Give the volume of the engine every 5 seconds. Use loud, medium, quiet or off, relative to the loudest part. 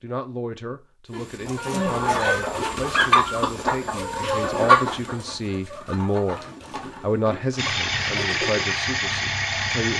off, loud.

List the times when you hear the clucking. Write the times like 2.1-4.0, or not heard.
1.1-8.7.